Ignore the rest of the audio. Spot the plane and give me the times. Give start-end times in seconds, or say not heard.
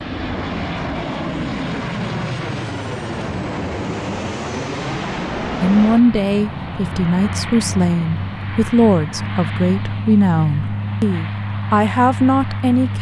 0.0-12.9.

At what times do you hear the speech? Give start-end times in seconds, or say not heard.
5.6-12.9.